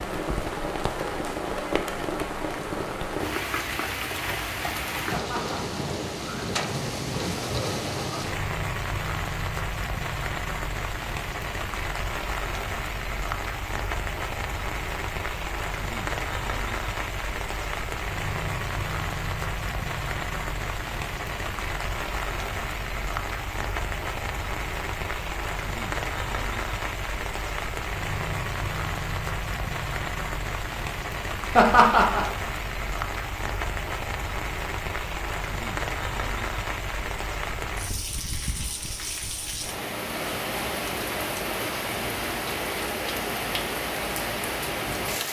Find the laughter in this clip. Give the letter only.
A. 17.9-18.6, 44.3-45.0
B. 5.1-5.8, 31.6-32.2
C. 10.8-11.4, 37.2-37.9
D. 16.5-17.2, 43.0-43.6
B.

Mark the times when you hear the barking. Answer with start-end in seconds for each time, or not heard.
not heard.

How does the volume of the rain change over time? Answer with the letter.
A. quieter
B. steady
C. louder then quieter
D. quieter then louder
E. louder
B.